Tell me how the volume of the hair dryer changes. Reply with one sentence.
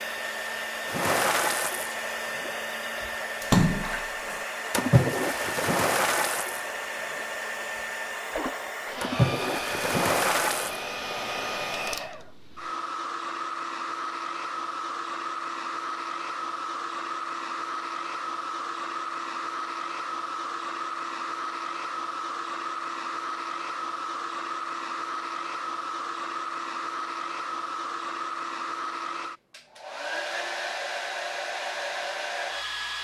The loudness of the hair dryer stays about the same.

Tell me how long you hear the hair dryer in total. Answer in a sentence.
The hair dryer can be heard for 33 seconds in total.